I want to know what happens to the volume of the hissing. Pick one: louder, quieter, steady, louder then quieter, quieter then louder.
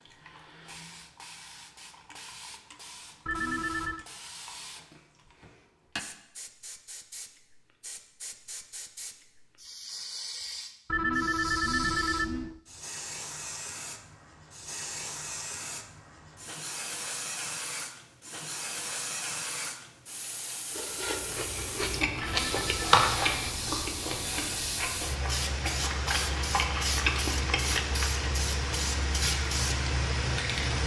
louder.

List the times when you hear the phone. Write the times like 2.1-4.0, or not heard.
3.2-4.0, 10.8-12.6, 22.1-22.9.